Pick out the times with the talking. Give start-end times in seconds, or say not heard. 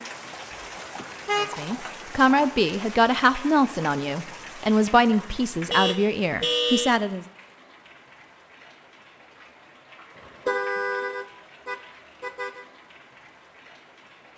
1.4-7.2.